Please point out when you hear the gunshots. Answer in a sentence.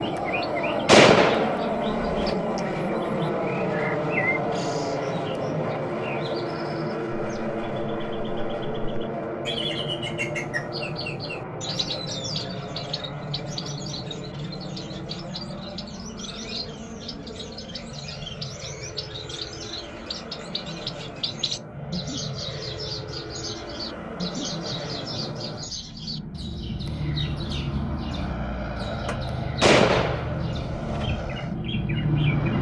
You can hear the gunshots from 0.8 to 2.4 s and from 29.6 to 31.1 s.